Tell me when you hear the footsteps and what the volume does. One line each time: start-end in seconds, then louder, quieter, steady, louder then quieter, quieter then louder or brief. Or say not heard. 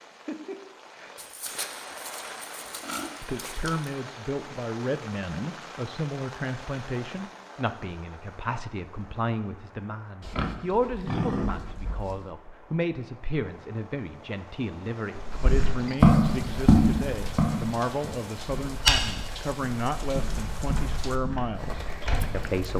15.2-22.6 quieter.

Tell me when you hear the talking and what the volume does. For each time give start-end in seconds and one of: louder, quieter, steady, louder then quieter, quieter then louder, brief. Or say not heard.
3.2-22.7 steady.